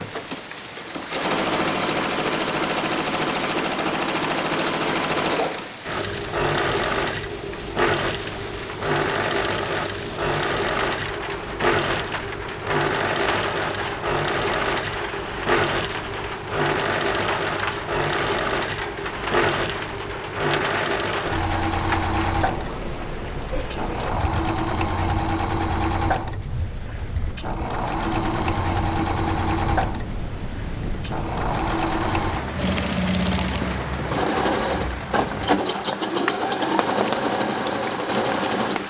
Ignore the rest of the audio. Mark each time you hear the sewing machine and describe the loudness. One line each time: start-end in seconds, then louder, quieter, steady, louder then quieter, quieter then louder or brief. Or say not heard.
0.0-38.8 steady.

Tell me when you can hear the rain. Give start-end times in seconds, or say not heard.
0.0-38.8.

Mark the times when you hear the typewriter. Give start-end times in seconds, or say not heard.
not heard.